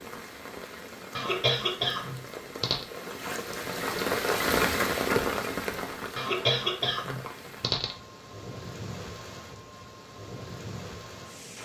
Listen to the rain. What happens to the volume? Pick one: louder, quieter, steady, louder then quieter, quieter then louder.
louder then quieter.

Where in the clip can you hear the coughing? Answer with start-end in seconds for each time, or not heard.
1.1-2.9, 6.2-8.0.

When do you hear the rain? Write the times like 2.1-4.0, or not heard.
0.0-11.6.